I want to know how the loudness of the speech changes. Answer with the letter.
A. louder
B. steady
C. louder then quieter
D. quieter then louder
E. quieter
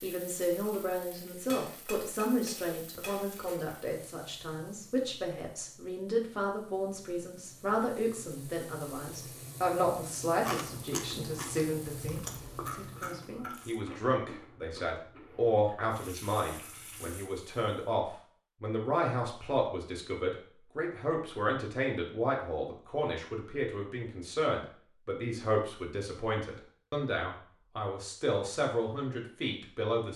B.